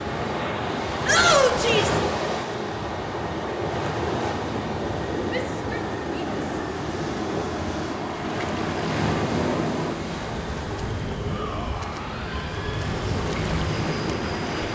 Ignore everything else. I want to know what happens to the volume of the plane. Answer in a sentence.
The volume of the plane stays about the same.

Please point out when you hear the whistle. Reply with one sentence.
The whistle can't be heard in this clip.